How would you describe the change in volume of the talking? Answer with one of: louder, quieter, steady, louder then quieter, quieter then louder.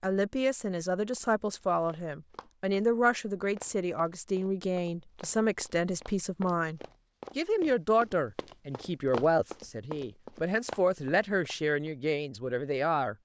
steady.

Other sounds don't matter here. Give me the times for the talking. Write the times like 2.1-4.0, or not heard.
0.0-13.2.